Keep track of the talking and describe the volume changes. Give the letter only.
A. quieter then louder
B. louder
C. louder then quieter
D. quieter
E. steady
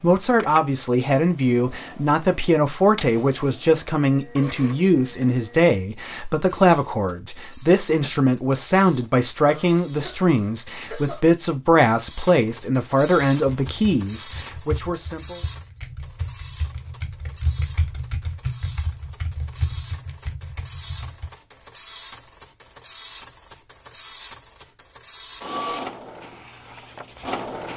E.